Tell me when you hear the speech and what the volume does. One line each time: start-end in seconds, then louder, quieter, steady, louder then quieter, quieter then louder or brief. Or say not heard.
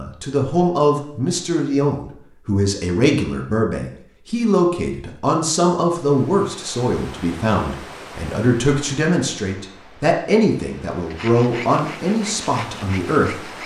0.0-13.6 steady.